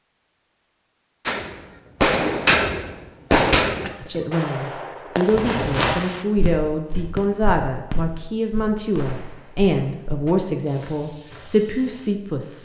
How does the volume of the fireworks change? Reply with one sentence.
The loudness of the fireworks goes down.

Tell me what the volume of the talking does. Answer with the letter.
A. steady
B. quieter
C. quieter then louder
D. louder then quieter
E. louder
A.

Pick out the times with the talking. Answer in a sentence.
You can hear the talking from 4.0 to 12.6 s.